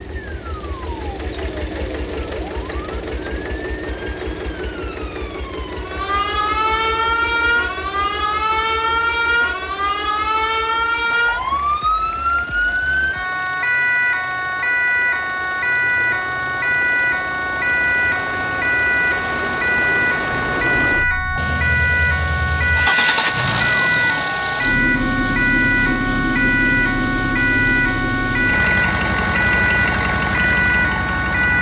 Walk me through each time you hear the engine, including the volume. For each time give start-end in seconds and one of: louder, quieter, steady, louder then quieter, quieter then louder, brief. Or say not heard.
0.0-31.5 quieter then louder.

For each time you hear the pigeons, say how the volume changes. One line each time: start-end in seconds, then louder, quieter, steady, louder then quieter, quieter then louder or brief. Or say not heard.
not heard.